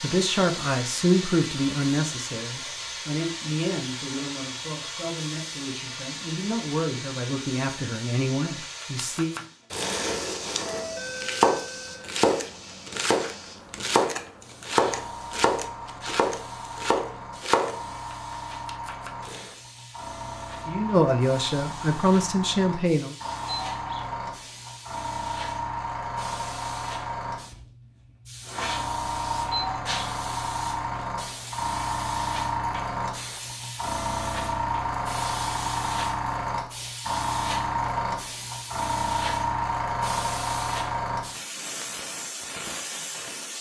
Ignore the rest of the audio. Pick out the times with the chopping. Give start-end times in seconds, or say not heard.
8.6-19.6.